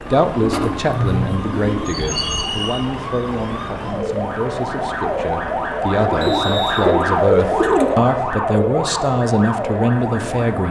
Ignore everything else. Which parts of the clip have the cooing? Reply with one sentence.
You can hear the cooing from 0.4 to 2.5 s and from 6.0 to 8.0 s.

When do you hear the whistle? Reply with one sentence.
The whistle can be heard from 2.1 to 2.9 s and from 6.2 to 6.8 s.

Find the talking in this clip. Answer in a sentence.
The talking can be heard from 0.0 to 10.6 s.